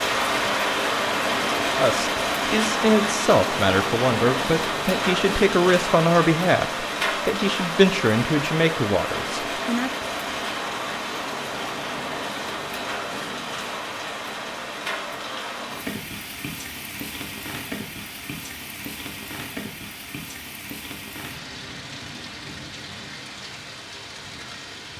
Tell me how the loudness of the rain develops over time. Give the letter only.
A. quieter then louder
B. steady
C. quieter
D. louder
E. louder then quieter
C.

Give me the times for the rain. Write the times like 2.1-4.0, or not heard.
0.0-24.9.